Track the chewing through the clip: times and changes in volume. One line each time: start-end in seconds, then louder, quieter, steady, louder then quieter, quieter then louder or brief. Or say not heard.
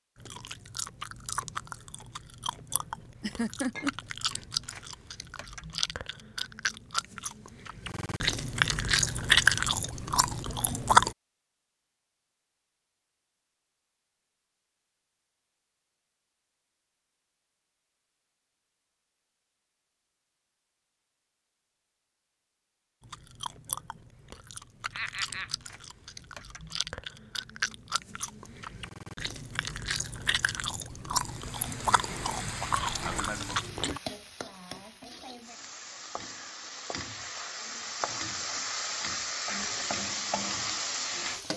0.1-11.1 louder
23.0-34.0 louder.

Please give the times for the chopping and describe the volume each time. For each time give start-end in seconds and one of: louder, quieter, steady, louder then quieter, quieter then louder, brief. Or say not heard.
not heard.